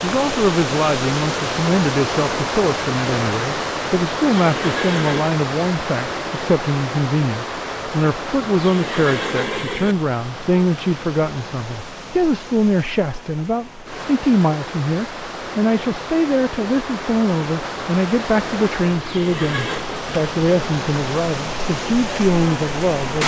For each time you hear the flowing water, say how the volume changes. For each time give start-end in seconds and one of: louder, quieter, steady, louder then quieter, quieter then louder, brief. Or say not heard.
0.0-23.2 quieter then louder.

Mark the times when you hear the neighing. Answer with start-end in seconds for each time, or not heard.
4.4-5.3, 8.6-9.9, 19.0-19.9.